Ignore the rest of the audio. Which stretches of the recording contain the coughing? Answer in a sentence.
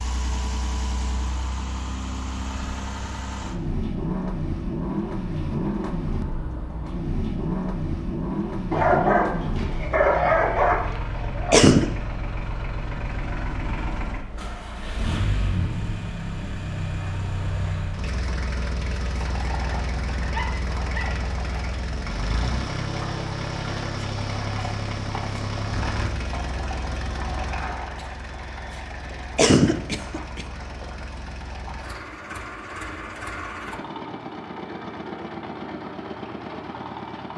The coughing can be heard from 11.5 to 11.9 s and from 29.4 to 30.4 s.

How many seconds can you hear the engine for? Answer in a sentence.
You can hear the engine for 37 seconds altogether.